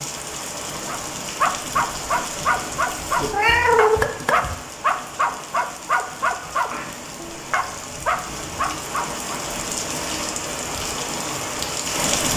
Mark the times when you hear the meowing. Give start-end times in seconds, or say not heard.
3.3-4.5, 6.7-7.3.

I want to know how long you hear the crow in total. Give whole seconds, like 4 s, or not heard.
not heard.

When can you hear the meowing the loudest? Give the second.
4 s.